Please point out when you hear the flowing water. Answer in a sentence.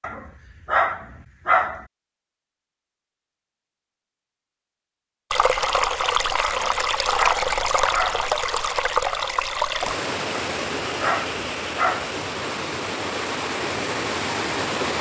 You can hear the flowing water from 5.3 to 14.9 s.